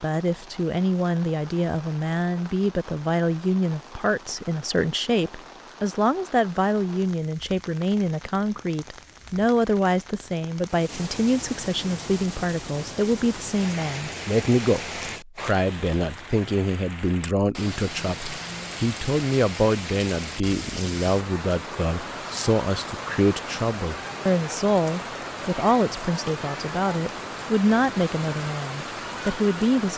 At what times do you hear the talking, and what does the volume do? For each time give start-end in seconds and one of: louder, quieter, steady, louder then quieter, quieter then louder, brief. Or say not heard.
0.0-29.9 steady.